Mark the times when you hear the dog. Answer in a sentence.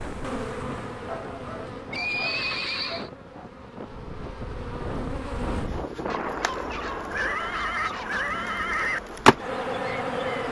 You can hear the dog from 1.1 to 3.5 s and from 6.0 to 8.3 s.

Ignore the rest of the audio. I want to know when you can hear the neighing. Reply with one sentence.
The neighing can be heard from 1.9 to 3.1 s and from 7.1 to 9.0 s.